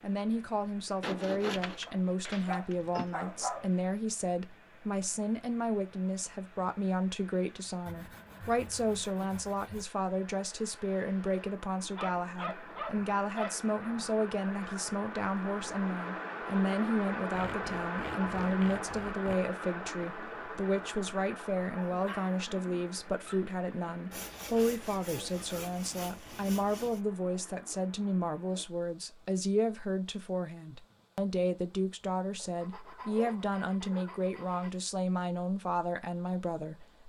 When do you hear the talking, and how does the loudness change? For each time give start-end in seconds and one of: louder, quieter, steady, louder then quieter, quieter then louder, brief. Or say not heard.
0.0-36.9 steady.